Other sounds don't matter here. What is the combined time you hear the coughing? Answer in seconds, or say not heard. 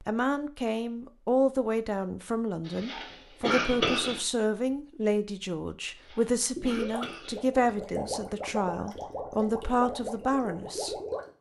3 s.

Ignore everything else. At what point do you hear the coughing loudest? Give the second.
4 s.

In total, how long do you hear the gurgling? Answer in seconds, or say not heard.
5 s.